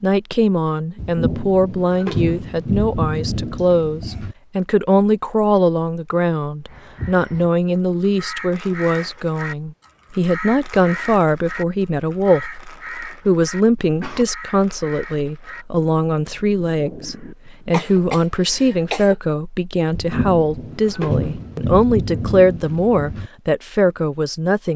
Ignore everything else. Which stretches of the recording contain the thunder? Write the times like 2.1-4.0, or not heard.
0.9-4.3, 19.9-23.3.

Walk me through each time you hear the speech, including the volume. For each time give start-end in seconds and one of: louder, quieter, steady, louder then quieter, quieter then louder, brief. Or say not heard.
0.0-24.7 steady.